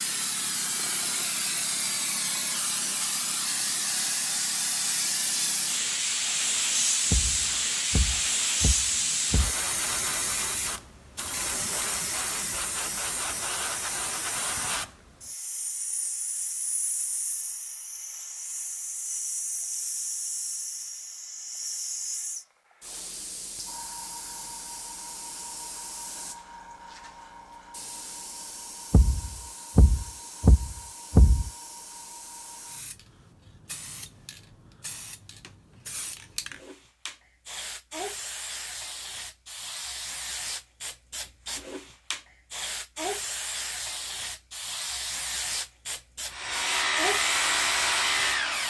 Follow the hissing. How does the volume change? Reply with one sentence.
The volume of the hissing goes down, then up.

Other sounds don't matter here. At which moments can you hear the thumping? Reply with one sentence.
You can hear the thumping from 7.1 to 9.6 s and from 28.9 to 31.5 s.